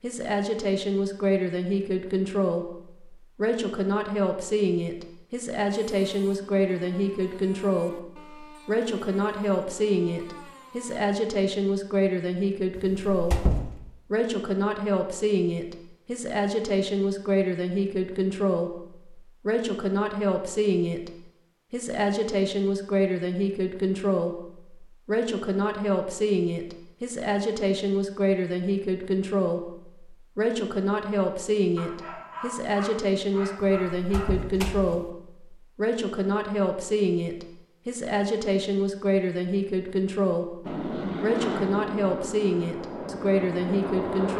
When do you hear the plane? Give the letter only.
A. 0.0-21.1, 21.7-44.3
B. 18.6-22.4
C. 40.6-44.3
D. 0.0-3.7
C.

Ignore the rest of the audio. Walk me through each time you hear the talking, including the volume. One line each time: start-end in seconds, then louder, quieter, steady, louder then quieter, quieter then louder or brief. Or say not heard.
0.0-21.1 steady
21.7-44.3 steady.